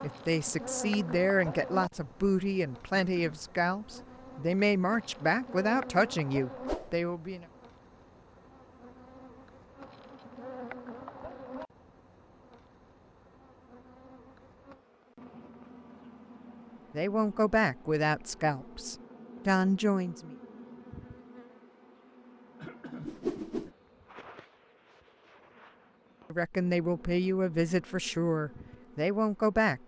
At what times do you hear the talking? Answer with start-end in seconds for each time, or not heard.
0.0-7.5, 16.9-20.3, 26.3-29.8.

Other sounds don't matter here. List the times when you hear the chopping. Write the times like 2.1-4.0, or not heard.
not heard.